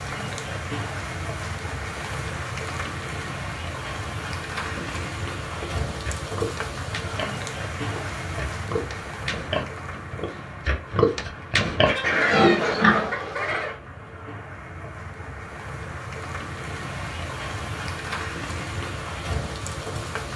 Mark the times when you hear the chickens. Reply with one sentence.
The chickens can be heard from 11.8 to 13.8 s.